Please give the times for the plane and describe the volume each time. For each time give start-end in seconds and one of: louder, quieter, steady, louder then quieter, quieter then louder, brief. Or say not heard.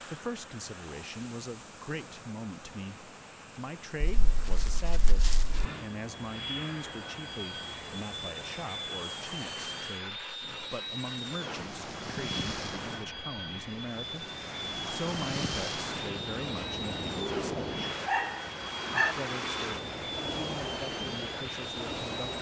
0.2-22.3 louder.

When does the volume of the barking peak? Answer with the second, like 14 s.
19 s.